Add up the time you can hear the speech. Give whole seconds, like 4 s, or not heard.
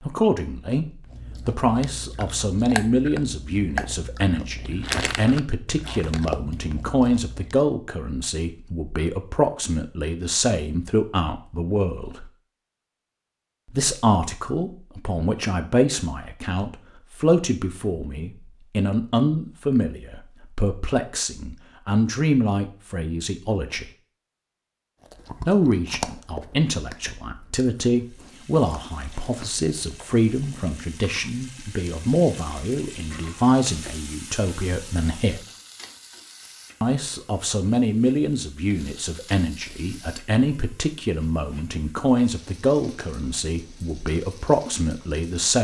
41 s.